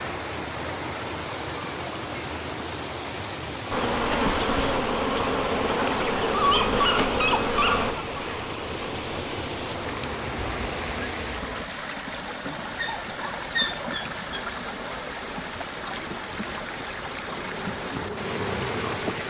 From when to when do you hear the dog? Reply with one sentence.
The dog can be heard from 6.3 to 7.9 s and from 12.4 to 14.4 s.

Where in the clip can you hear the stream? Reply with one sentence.
You can hear the stream from 0.0 to 19.2 s.